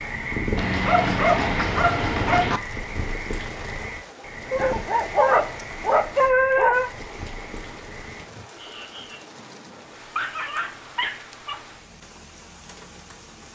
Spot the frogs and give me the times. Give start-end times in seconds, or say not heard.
0.0-9.2.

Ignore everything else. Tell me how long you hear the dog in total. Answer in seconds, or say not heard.
6 s.